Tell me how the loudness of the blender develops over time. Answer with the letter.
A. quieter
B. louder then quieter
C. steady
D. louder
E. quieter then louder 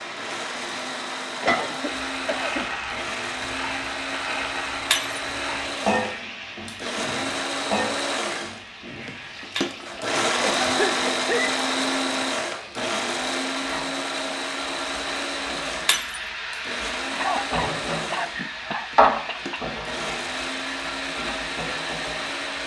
B.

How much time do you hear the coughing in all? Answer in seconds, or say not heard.
5 s.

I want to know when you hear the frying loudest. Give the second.
19 s.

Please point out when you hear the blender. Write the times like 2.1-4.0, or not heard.
0.0-22.6.